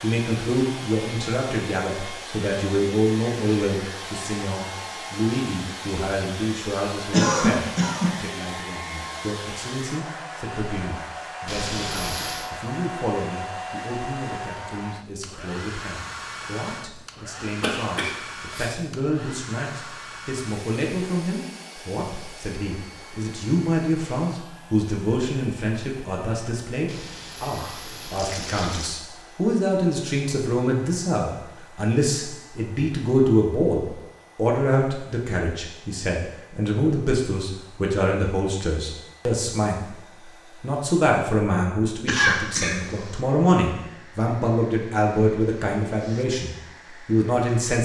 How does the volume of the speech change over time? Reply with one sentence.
The loudness of the speech goes down, then up.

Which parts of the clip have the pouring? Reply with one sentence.
You can hear the pouring from 11.4 to 12.5 s and from 26.9 to 28.9 s.